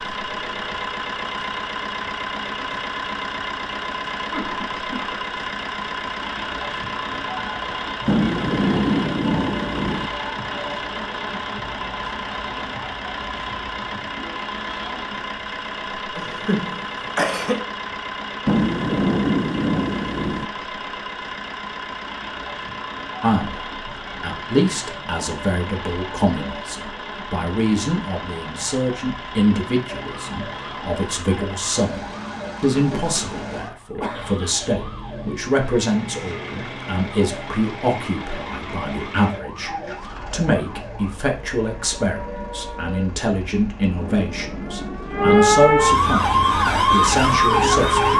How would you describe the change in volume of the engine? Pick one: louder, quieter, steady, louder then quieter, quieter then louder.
quieter.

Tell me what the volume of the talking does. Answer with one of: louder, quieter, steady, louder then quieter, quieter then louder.
steady.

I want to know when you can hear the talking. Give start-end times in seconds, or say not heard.
23.2-48.1.